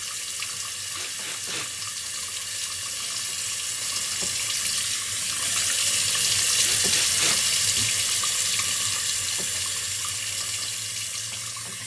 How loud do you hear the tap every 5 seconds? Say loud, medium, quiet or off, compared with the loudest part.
medium, loud, medium.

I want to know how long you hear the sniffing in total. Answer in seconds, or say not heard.
3 s.